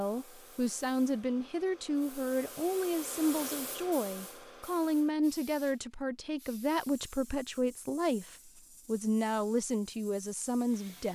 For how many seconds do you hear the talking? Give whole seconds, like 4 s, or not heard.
11 s.